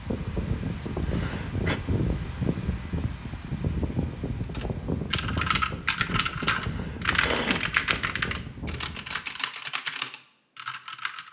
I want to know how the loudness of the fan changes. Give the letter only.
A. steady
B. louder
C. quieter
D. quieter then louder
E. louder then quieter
C.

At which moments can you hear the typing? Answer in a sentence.
You can hear the typing from 4.5 to 11.2 s.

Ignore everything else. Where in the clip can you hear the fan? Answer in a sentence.
You can hear the fan from 0.0 to 9.2 s.